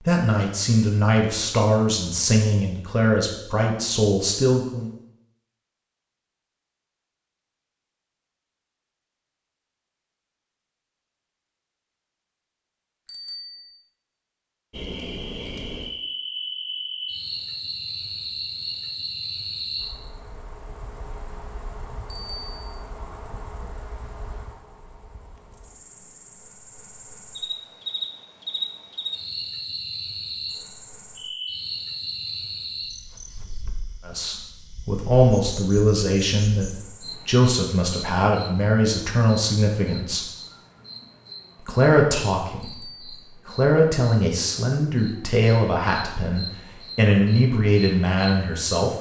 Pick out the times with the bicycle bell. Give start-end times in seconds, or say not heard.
13.1-13.7, 22.1-22.8, 42.6-43.2.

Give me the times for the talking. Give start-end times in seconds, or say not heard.
0.0-4.9, 34.0-40.2, 41.6-48.9.